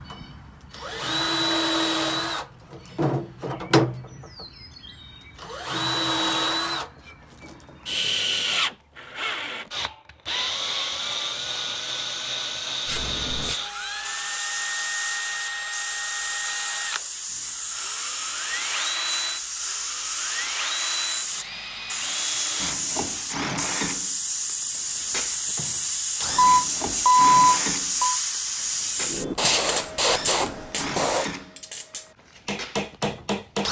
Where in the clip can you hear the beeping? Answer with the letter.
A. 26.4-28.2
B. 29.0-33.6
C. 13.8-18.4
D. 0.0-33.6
A.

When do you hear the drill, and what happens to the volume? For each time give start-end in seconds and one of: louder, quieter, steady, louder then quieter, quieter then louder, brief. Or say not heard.
0.0-33.6 quieter.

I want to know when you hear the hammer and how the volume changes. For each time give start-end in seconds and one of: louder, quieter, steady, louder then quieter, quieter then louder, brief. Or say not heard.
29.0-33.6 quieter then louder.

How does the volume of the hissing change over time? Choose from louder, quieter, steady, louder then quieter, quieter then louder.
louder.